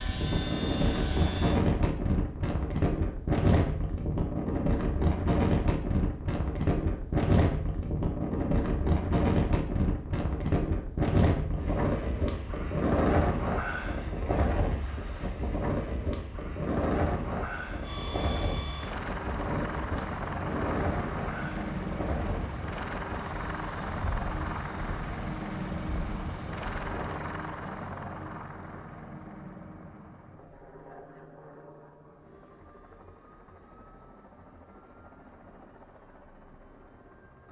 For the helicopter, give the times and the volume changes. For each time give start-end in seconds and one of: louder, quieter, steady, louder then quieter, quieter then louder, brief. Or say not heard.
0.0-1.6 brief
17.8-37.4 quieter.